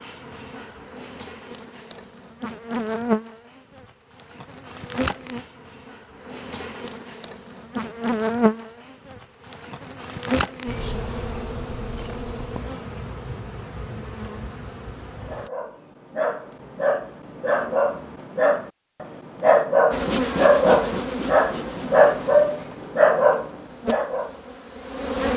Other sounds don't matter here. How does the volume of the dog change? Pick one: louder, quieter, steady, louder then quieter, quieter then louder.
louder.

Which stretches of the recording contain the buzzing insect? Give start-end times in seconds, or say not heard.
0.0-15.5, 19.9-25.3.